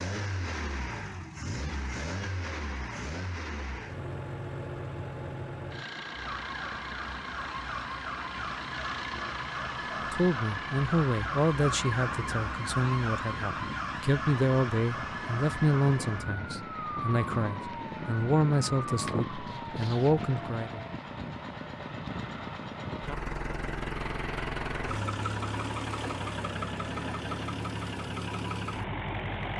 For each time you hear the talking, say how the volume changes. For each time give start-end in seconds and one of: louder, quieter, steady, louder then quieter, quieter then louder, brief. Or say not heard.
10.1-20.8 steady.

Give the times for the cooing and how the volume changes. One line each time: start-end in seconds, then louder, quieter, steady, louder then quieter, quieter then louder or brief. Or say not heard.
not heard.